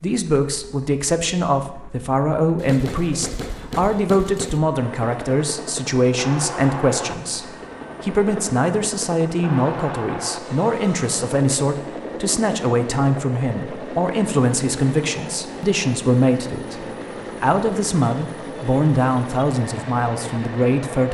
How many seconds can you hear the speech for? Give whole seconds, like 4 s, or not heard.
21 s.